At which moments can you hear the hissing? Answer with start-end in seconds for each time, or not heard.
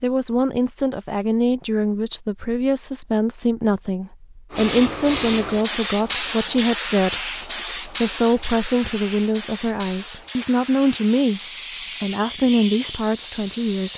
4.5-13.9.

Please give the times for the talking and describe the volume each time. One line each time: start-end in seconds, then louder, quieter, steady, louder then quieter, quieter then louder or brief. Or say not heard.
0.0-11.4 steady
12.0-13.9 brief.